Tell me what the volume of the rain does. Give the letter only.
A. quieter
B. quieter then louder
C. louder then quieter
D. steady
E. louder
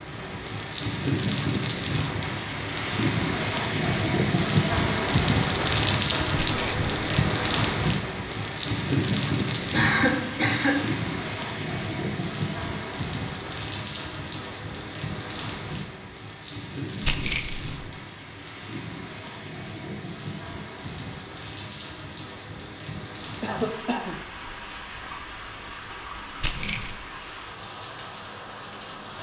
A.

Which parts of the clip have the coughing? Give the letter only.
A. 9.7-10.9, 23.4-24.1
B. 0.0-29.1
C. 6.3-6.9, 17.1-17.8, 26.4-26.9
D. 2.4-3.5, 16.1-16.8
A.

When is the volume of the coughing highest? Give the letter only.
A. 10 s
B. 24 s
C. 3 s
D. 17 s
A.